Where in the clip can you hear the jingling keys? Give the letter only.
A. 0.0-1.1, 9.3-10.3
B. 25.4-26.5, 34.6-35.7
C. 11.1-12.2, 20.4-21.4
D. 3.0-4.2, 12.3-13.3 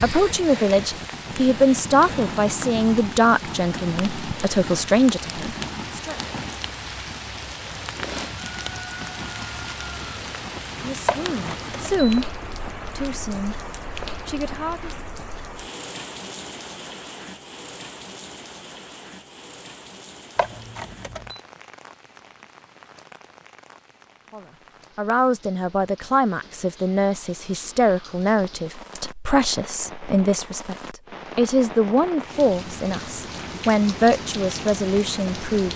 C.